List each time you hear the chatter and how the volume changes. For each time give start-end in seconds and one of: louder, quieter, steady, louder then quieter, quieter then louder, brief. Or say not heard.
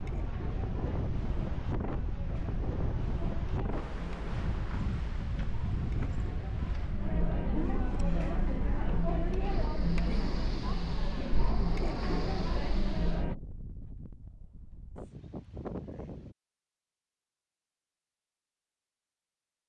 0.0-13.3 louder.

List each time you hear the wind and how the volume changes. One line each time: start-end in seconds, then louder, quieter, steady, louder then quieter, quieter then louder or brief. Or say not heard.
0.0-16.4 quieter.